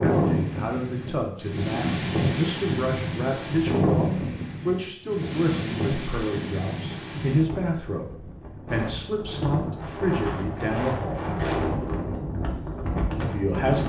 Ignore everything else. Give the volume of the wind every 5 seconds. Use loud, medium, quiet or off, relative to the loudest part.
loud, medium, loud.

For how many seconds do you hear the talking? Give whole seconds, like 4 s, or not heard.
12 s.